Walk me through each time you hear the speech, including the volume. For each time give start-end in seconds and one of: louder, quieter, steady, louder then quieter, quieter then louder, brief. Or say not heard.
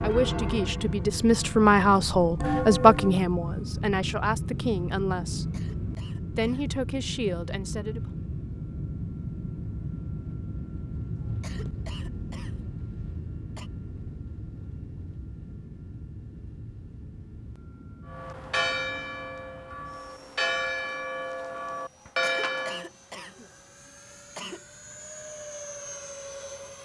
0.0-5.5 louder then quieter
6.3-8.0 brief.